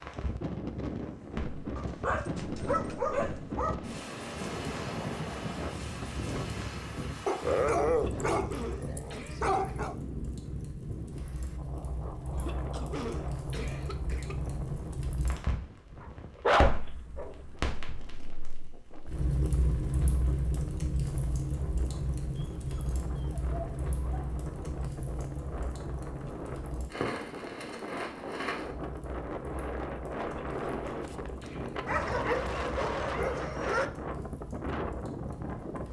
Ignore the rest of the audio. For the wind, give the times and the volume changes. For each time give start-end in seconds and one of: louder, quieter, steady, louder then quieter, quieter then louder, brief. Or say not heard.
0.0-35.8 quieter then louder.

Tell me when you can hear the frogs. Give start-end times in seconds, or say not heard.
not heard.